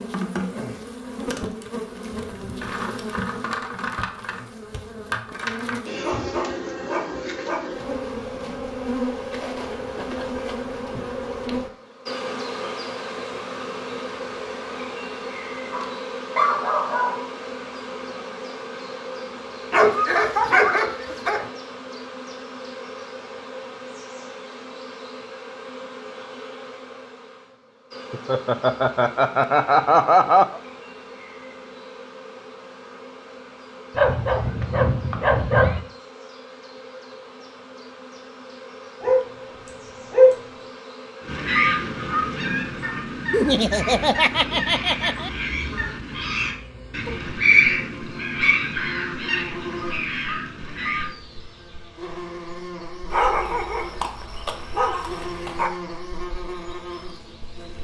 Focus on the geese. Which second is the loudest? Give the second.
48 s.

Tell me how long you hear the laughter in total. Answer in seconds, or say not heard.
5 s.